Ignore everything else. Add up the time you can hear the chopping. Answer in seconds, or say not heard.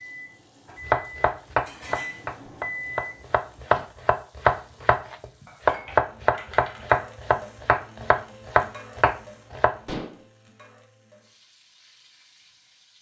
9 s.